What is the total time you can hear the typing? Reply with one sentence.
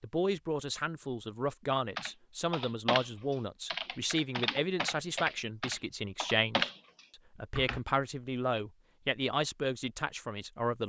You can hear the typing for 6 seconds altogether.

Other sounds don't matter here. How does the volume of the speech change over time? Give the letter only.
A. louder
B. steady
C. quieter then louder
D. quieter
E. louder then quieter
B.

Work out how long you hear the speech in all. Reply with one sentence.
You can hear the speech for 10 seconds altogether.